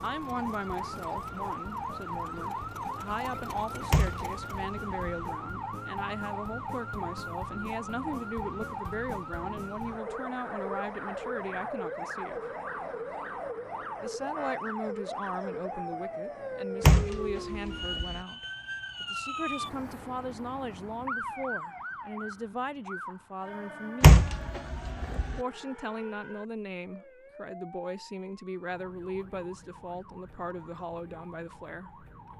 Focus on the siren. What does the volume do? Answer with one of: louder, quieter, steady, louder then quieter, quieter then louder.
quieter.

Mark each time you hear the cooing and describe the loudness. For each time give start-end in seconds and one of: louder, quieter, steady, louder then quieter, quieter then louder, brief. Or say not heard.
not heard.